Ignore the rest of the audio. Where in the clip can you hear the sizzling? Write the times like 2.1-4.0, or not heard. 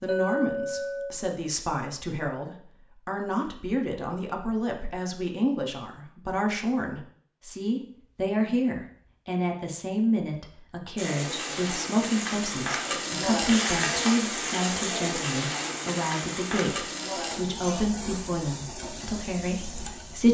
10.9-20.3.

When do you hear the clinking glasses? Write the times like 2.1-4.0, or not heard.
0.1-1.2.